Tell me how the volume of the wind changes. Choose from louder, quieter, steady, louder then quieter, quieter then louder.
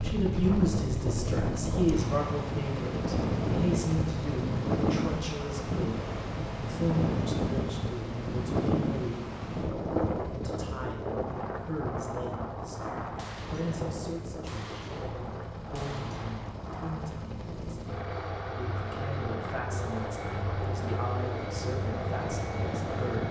quieter.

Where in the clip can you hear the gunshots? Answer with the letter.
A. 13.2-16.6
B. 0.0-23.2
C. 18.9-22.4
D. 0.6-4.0
A.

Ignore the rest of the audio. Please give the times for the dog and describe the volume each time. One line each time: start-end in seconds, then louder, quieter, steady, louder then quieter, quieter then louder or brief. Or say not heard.
not heard.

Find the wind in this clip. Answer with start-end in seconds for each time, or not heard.
0.0-23.2.